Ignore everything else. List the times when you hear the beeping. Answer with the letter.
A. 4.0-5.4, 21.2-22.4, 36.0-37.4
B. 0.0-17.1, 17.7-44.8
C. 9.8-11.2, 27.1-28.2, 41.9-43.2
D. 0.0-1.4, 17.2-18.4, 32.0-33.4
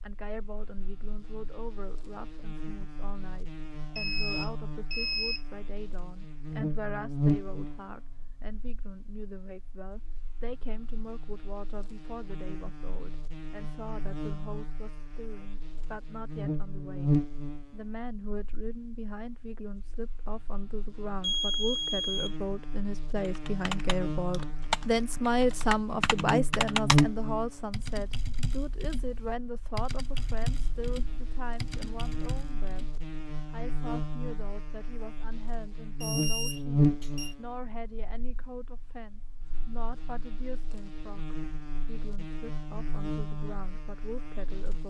A.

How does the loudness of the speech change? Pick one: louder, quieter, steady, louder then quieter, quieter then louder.
louder then quieter.